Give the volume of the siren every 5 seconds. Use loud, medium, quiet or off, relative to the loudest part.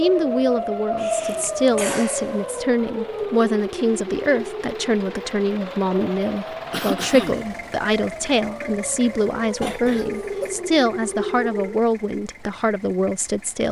loud, medium, loud.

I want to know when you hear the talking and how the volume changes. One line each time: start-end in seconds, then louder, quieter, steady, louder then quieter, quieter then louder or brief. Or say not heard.
0.0-13.6 steady.